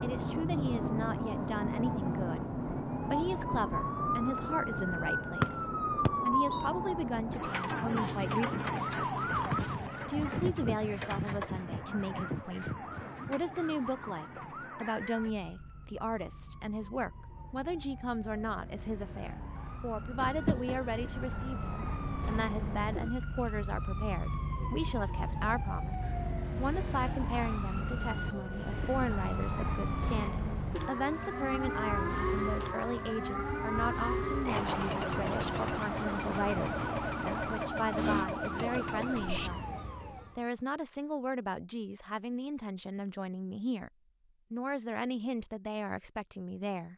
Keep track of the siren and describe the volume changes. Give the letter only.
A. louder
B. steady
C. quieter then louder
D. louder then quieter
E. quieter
C.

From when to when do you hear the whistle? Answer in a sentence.
The whistle can be heard from 5.4 to 6.7 s.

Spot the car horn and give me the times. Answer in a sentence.
You can hear the car horn from 20.2 to 21.0 s.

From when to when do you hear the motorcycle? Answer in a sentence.
The motorcycle can't be heard in this clip.